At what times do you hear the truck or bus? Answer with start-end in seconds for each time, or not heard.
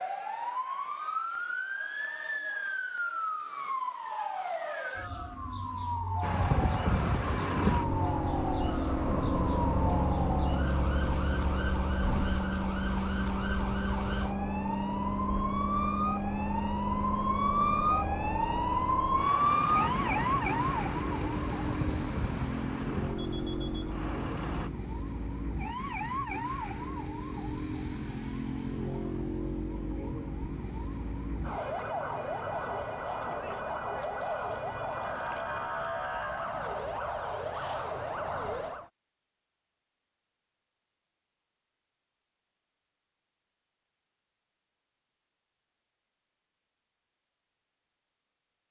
6.2-24.7.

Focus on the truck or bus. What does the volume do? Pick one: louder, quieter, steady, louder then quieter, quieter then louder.
quieter.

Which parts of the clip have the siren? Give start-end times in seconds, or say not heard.
0.0-38.9.